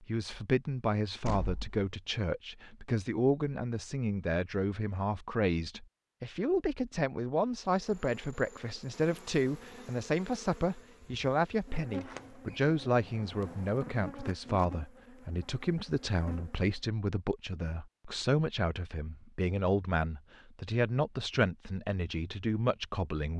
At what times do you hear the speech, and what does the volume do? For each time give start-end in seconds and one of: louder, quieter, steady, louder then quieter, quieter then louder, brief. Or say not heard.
0.0-23.3 steady.